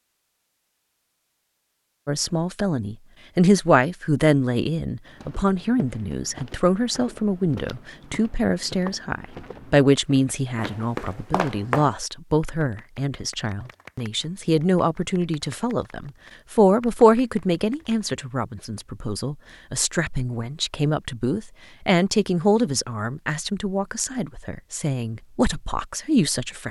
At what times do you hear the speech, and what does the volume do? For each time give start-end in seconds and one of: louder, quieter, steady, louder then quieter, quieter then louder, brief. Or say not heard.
2.0-26.6 steady.